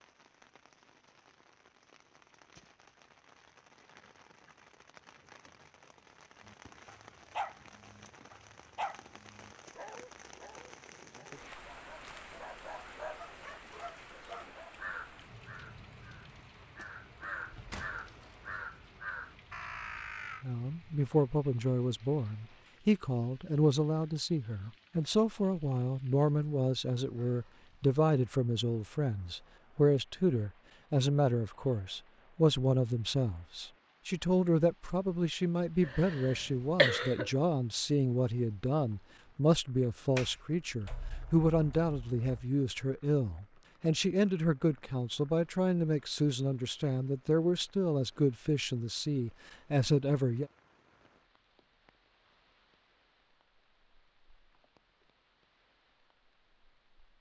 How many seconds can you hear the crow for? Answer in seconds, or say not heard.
6 s.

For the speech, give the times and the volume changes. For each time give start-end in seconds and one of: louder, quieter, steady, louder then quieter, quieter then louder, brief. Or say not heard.
20.4-50.5 steady.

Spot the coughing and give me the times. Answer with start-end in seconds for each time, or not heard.
35.8-37.3.